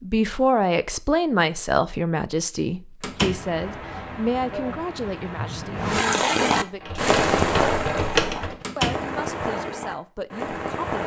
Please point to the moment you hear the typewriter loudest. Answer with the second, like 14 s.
8 s.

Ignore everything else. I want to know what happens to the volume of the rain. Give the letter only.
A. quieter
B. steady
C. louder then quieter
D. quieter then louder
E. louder
C.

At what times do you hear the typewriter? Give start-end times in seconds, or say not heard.
6.8-8.6.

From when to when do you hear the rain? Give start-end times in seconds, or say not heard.
3.0-11.0.